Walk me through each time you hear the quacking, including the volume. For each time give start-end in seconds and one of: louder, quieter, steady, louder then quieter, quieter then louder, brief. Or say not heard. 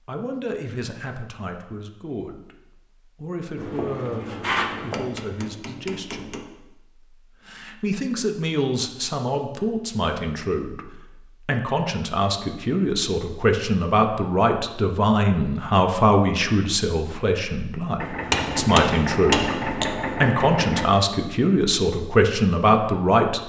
not heard.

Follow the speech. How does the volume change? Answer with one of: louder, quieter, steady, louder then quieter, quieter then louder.
louder.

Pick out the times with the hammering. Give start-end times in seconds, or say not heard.
3.5-6.4, 18.3-19.9.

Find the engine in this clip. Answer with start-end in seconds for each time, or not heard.
17.9-20.9.